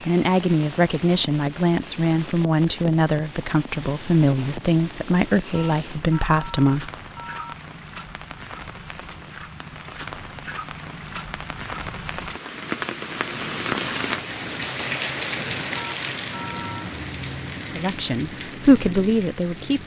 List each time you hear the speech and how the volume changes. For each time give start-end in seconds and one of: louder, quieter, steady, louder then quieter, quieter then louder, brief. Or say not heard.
0.0-6.9 steady
17.8-19.8 brief.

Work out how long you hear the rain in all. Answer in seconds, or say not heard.
20 s.